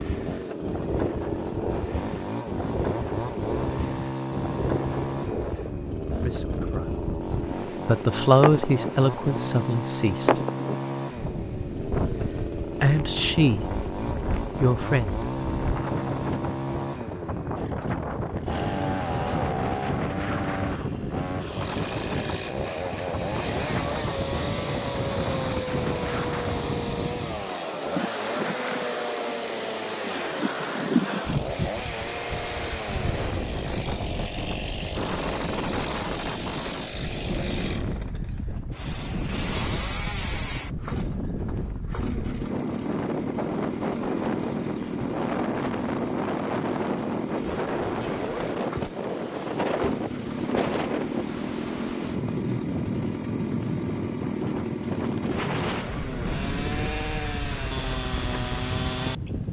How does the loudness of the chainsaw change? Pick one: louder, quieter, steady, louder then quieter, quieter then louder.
steady.